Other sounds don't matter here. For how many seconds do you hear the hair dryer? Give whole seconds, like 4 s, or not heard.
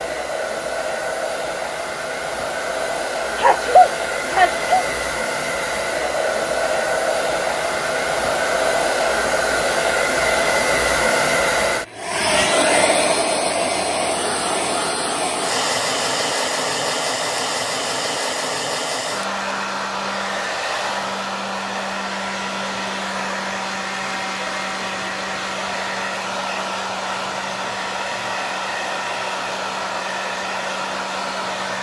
32 s.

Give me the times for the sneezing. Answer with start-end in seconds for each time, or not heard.
3.4-4.8.